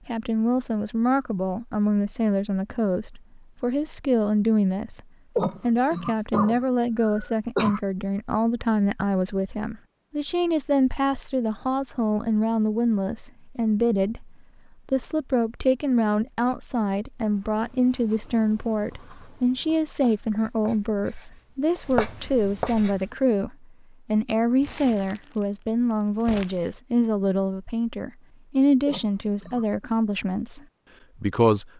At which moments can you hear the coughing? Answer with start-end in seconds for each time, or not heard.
5.3-7.8, 28.9-29.9.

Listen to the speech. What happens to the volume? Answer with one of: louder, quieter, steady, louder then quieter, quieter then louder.
steady.